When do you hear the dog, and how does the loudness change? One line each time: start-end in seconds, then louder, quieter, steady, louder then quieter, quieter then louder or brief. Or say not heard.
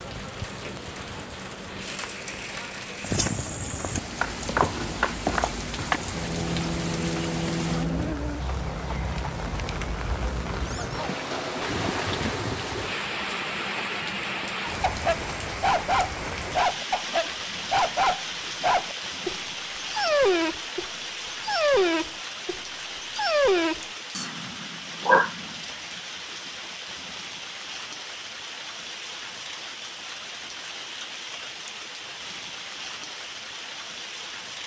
13.9-25.6 steady.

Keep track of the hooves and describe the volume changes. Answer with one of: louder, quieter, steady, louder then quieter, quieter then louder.
quieter.